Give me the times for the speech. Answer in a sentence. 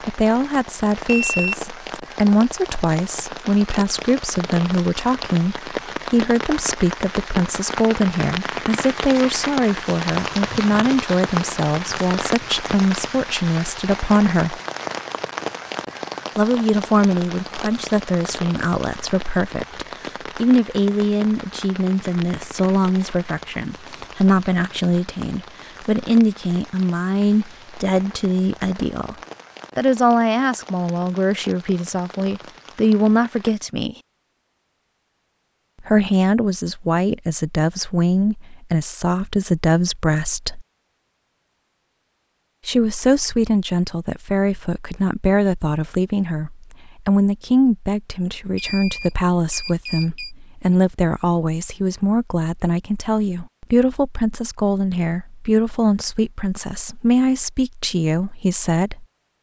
You can hear the speech from 0.1 to 14.6 s, from 16.4 to 29.1 s, from 29.8 to 34.0 s, from 35.8 to 40.6 s and from 42.6 to 59.0 s.